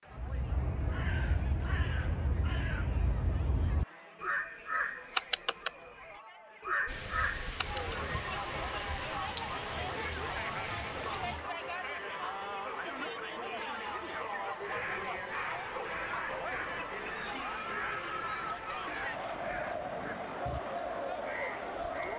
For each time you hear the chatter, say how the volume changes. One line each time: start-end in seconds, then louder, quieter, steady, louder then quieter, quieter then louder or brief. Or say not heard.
0.0-22.1 louder.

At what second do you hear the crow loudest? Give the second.
5 s.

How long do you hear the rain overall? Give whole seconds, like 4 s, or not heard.
15 s.